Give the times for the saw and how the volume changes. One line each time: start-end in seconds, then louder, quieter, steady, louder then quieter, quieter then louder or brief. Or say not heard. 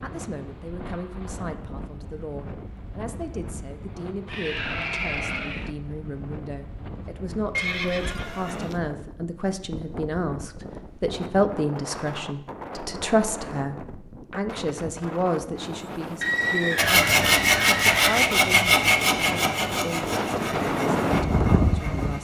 16.8-22.1 quieter.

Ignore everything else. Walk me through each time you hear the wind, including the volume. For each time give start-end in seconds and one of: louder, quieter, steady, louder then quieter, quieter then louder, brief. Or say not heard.
0.0-22.1 louder.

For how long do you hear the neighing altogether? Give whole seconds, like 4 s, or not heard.
5 s.